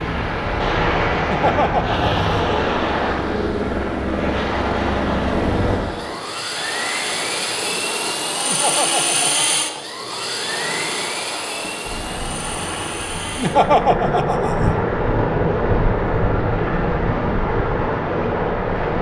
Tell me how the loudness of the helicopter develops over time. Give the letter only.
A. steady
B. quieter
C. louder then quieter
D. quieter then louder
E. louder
A.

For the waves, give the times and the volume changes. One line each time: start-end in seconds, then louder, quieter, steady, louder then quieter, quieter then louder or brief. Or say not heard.
0.0-18.9 quieter then louder.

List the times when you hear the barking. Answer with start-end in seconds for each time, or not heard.
not heard.